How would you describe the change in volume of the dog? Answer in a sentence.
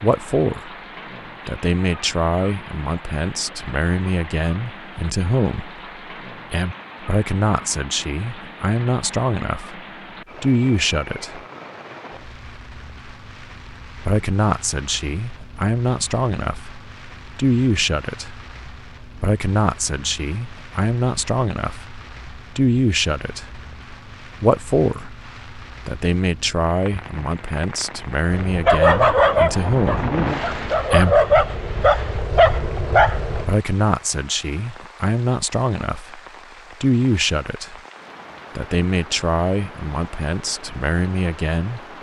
The volume of the dog goes down, then up.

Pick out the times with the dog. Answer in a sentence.
You can hear the dog from 28.2 to 33.5 s.